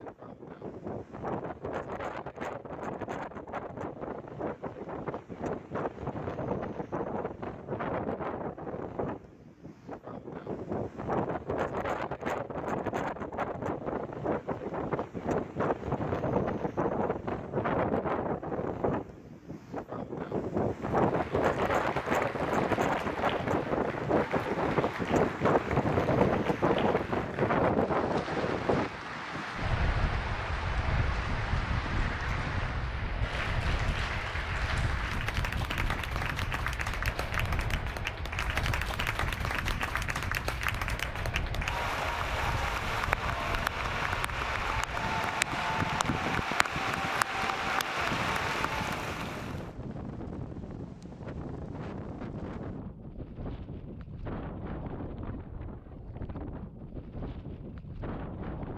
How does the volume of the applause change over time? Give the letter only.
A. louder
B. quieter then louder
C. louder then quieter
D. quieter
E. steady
A.